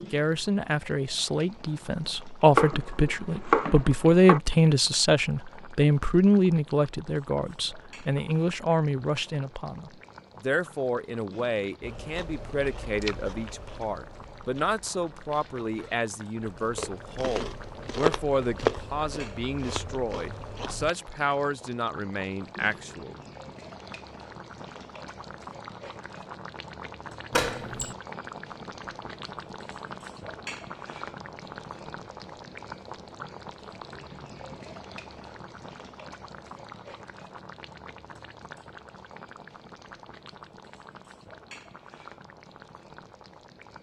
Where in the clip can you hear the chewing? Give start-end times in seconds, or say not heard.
11.8-20.9.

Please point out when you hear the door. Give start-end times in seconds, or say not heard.
27.3-27.9.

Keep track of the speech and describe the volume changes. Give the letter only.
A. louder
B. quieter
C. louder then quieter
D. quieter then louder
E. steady
B.